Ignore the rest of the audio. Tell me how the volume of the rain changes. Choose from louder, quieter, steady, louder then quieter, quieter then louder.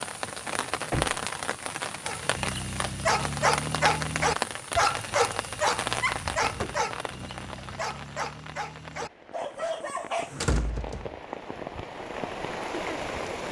quieter then louder.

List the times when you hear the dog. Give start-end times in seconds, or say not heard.
2.0-10.5.